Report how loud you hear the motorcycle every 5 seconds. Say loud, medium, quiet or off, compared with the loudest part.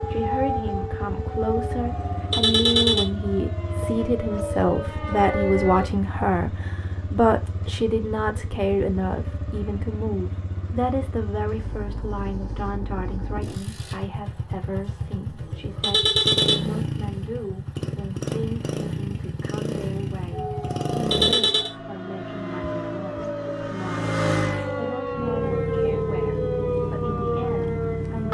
medium, medium, medium, loud, loud, loud.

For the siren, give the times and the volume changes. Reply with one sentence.
You can hear the siren from 0.0 to 5.9 s, getting quieter then louder; and from 20.3 to 28.3 s, getting louder.